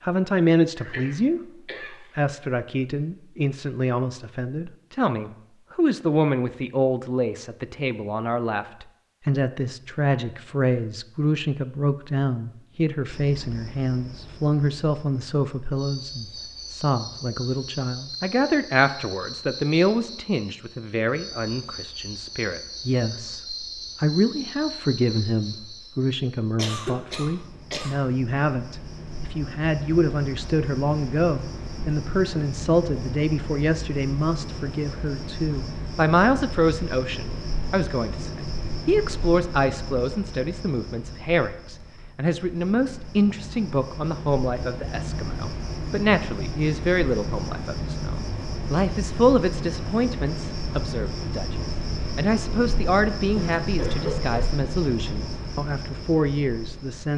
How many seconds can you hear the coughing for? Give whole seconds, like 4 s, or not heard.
4 s.